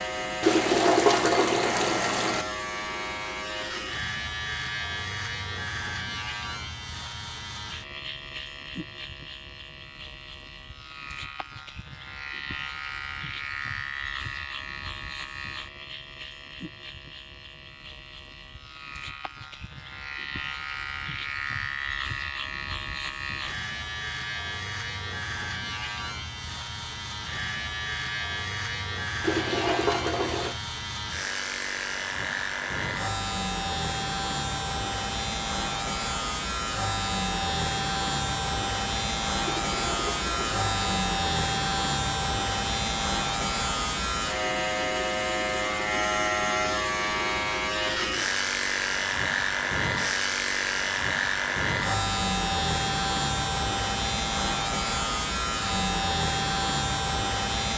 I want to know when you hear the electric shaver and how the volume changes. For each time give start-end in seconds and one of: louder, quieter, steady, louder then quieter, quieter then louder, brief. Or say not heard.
0.0-57.7 louder.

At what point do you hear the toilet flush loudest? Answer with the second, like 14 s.
1 s.